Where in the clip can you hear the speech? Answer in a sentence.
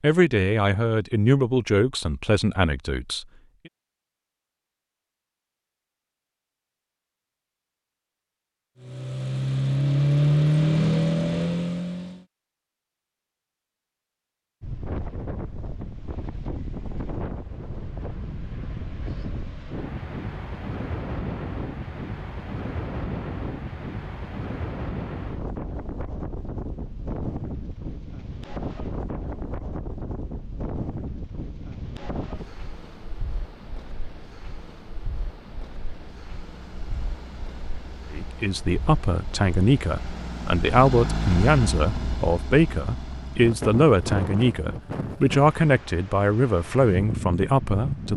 You can hear the speech from 0.0 to 3.2 s and from 38.1 to 48.1 s.